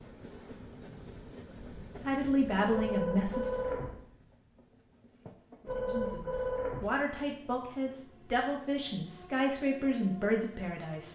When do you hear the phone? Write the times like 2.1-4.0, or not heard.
2.7-4.0, 5.7-6.9.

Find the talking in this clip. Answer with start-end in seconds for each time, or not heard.
2.0-3.8, 5.8-11.1.